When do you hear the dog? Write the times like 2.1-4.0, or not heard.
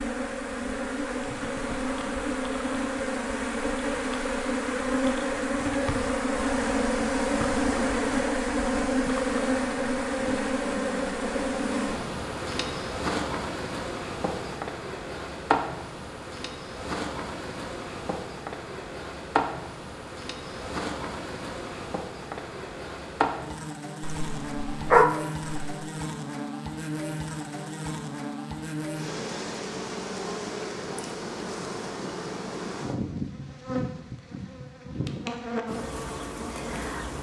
24.0-25.8.